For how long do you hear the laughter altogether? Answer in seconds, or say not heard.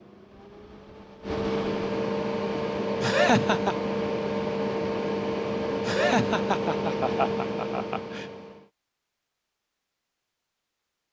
3 s.